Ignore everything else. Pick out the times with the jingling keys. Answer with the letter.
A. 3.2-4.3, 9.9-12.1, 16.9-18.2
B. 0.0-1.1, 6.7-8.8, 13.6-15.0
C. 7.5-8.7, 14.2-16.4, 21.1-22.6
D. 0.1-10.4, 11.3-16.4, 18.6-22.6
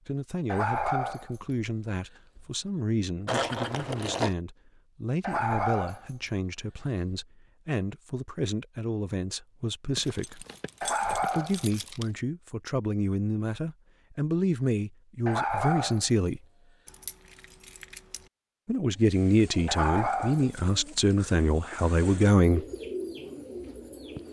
A.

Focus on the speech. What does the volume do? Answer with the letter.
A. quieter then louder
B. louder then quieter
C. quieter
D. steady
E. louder
E.